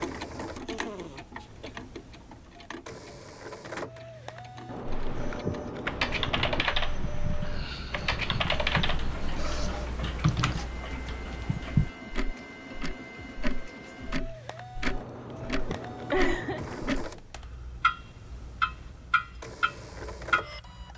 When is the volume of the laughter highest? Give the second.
16 s.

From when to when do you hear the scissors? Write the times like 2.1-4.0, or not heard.
4.7-6.7, 14.9-17.1.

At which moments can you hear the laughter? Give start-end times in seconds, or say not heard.
0.7-1.8, 7.4-9.3, 15.7-16.6.